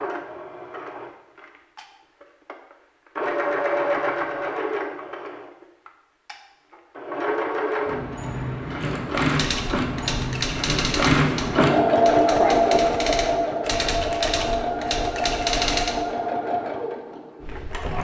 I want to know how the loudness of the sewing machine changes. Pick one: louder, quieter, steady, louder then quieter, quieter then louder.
louder then quieter.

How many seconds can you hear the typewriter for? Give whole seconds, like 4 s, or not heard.
7 s.